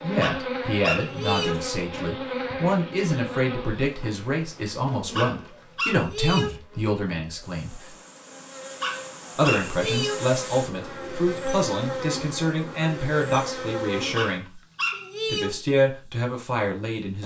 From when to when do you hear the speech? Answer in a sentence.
The speech can be heard from 0.0 to 8.0 s, from 9.3 to 14.6 s and from 15.2 to 17.2 s.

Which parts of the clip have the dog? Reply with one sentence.
The dog can be heard from 0.2 to 1.6 s, from 5.2 to 6.6 s, from 8.8 to 10.2 s and from 14.2 to 15.6 s.